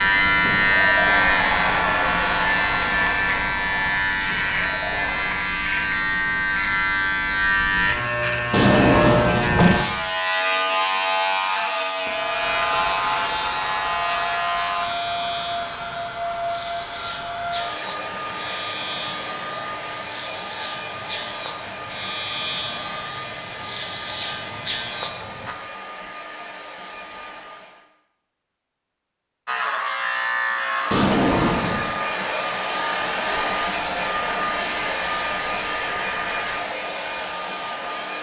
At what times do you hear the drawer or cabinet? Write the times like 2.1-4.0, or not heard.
8.5-9.8, 30.9-31.9.